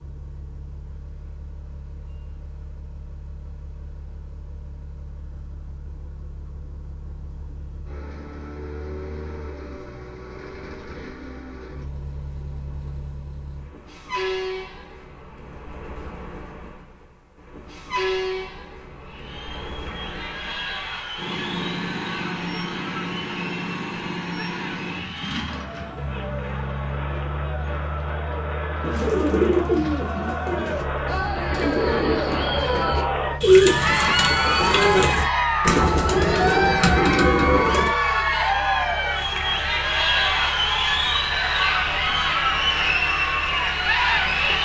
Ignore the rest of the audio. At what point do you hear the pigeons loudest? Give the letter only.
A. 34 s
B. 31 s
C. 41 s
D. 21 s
A.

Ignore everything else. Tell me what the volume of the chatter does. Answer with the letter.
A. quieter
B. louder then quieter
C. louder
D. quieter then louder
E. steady
C.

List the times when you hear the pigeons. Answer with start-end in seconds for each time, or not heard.
28.8-37.9.